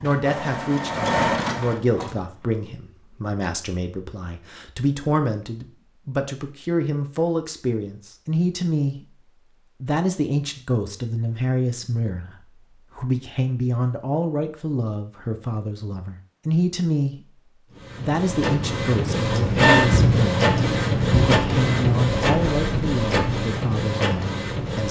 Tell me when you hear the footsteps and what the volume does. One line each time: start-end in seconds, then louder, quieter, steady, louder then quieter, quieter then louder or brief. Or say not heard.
not heard.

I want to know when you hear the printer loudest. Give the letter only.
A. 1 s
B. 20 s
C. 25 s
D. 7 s
B.